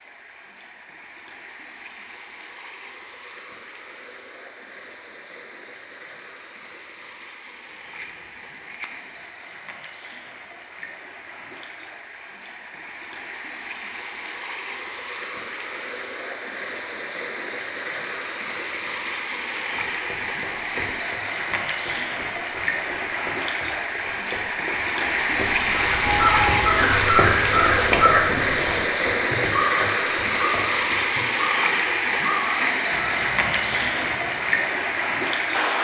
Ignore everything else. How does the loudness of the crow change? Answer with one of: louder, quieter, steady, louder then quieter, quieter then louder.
quieter.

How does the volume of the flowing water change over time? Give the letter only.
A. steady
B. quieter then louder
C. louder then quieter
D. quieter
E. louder
E.